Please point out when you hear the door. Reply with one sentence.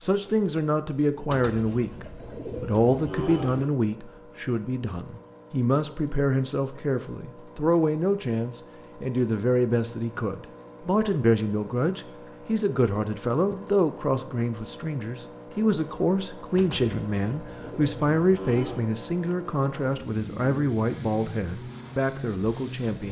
The door can't be heard in this clip.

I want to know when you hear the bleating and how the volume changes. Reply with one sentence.
You can't hear the bleating here.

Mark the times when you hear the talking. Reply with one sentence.
You can hear the talking from 0.0 to 23.0 s.